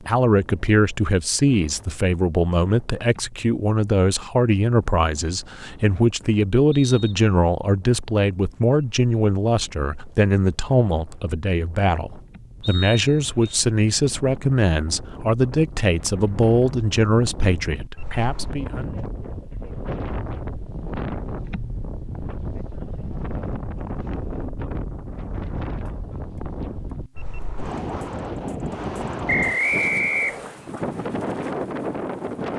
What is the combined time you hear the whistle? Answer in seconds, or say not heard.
3 s.